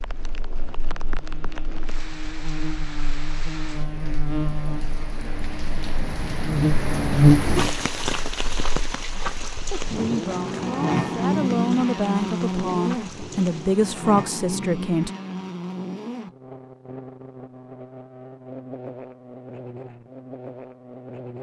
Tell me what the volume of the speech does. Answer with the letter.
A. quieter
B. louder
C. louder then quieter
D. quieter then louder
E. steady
B.